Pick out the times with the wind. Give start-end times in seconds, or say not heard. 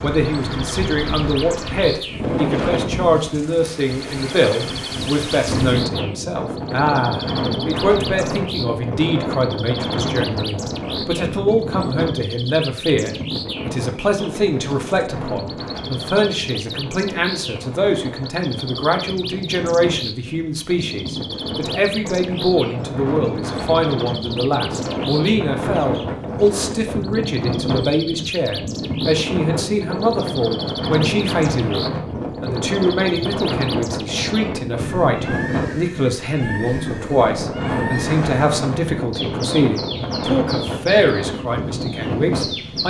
0.0-42.8.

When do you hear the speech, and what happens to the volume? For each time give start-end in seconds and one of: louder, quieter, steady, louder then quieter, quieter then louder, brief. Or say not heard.
0.0-42.8 steady.